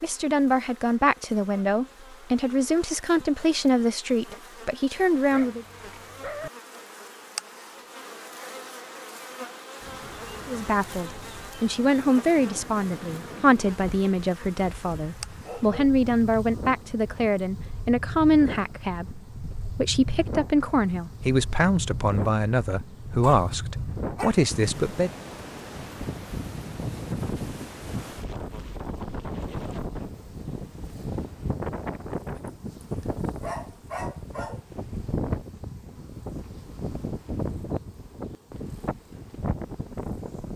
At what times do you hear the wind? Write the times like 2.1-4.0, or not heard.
9.8-40.5.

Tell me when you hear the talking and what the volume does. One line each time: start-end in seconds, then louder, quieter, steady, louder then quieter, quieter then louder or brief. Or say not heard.
0.0-5.7 steady
10.4-25.1 steady.